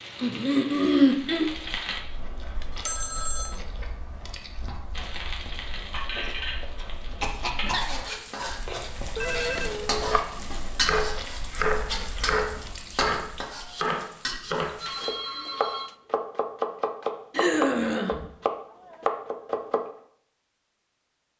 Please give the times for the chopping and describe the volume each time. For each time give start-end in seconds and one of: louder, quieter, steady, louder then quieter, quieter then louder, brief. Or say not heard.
9.9-19.9 steady.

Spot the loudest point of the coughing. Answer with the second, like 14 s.
1 s.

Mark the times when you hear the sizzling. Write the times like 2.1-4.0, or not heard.
0.0-2.0, 5.0-15.1.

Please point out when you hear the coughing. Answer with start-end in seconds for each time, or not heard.
0.1-1.5, 7.2-8.1, 17.3-18.2.